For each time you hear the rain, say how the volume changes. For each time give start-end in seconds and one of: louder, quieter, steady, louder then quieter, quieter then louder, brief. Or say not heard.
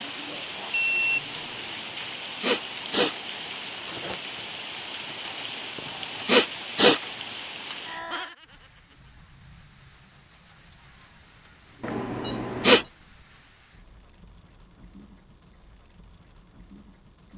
0.0-17.3 quieter.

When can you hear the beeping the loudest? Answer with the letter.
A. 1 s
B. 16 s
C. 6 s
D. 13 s
A.